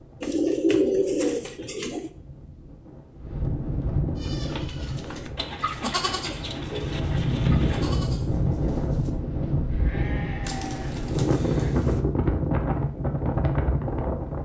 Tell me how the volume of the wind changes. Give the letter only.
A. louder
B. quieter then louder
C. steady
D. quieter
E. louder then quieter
A.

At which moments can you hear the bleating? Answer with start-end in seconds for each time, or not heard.
4.2-11.8.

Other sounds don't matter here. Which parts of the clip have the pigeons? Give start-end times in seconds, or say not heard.
0.2-2.1, 5.3-8.0, 10.4-12.1.